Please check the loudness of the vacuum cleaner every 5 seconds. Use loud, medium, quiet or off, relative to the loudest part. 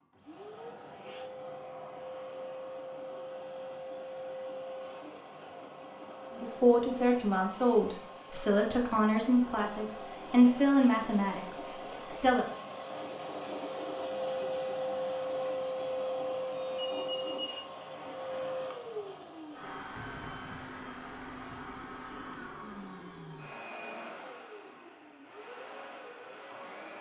medium, medium, loud, loud, medium, medium.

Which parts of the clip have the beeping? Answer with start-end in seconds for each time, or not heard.
15.6-17.6.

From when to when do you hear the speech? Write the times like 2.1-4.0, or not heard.
6.3-12.4.